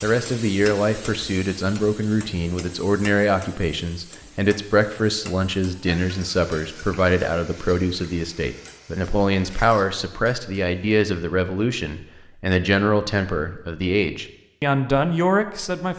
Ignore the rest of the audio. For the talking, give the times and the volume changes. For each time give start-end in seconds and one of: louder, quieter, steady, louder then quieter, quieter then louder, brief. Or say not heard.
0.0-15.9 steady.